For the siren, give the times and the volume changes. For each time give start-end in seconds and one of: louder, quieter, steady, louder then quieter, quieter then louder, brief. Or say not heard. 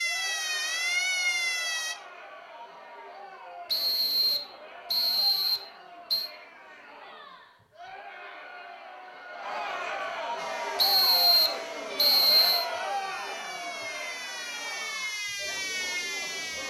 0.0-1.9 brief
10.3-16.6 louder.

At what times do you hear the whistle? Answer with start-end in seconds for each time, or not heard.
3.6-6.3, 10.8-12.7.